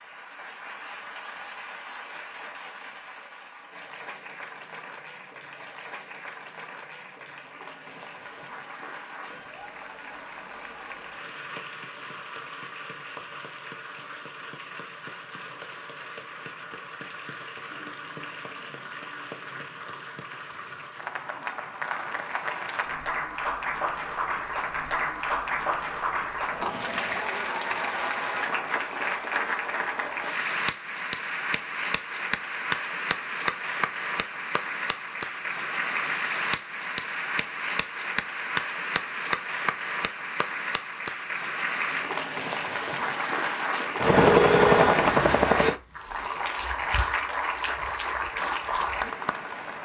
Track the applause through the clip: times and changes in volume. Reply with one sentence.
The applause can be heard from 0.0 to 49.8 s, getting louder.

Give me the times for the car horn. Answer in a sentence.
You can hear the car horn from 44.3 to 45.0 s.